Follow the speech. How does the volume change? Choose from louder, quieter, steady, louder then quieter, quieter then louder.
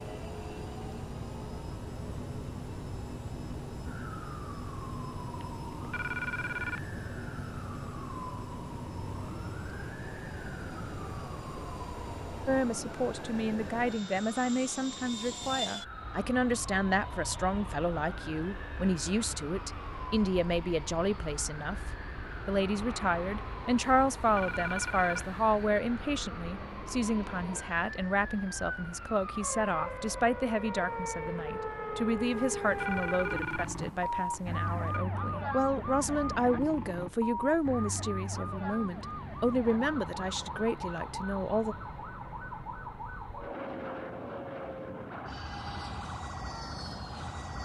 steady.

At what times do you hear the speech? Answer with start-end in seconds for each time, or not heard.
12.4-21.8, 22.4-41.8.